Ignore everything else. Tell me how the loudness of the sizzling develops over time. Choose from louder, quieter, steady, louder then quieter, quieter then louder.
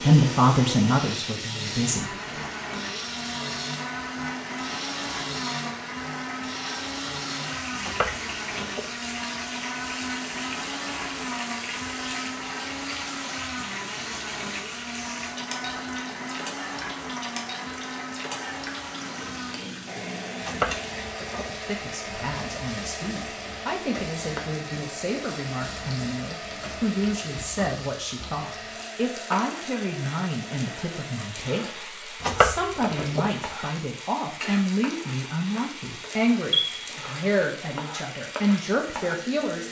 steady.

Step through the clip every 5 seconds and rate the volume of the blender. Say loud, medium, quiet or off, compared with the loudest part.
loud, loud, loud, loud, loud, medium, medium, medium.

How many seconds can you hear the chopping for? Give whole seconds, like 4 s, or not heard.
3 s.